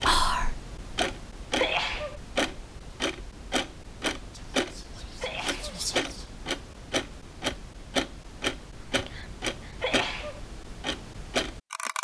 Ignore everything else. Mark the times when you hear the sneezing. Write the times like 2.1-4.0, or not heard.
1.6-2.2, 5.2-5.8, 9.8-10.4.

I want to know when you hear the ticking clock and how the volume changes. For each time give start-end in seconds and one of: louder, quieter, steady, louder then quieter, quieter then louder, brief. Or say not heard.
0.0-11.9 steady.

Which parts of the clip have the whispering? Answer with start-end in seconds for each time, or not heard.
0.1-0.6, 4.3-6.2, 8.8-9.9.